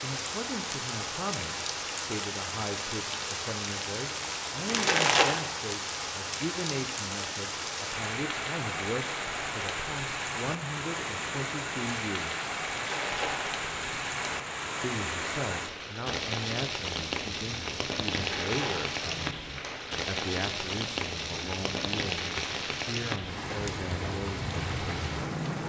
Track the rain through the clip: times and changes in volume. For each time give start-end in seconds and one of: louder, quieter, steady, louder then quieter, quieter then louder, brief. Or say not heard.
0.0-25.6 steady.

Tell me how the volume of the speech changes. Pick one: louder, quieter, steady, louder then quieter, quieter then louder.
steady.